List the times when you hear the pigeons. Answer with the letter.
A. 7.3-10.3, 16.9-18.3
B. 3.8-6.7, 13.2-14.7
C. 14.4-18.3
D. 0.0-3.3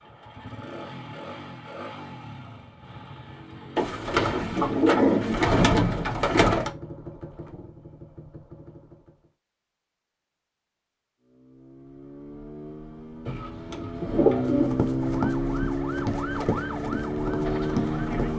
B.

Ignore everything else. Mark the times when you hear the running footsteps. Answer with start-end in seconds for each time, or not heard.
14.4-18.3.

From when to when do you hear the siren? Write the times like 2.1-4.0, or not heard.
15.0-18.3.